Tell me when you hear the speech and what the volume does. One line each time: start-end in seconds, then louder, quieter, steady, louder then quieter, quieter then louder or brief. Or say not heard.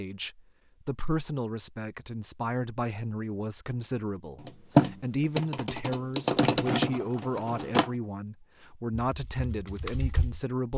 0.0-10.7 steady.